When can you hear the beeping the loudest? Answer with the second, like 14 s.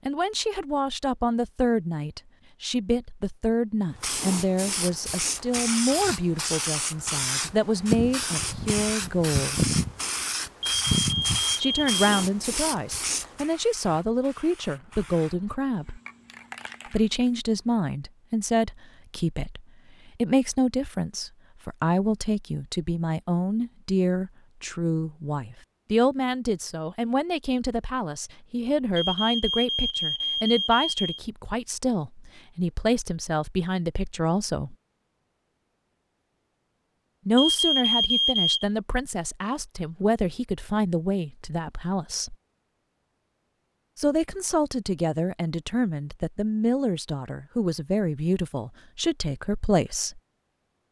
38 s.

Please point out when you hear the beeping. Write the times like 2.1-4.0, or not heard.
10.7-12.2, 28.9-31.2, 37.4-38.6.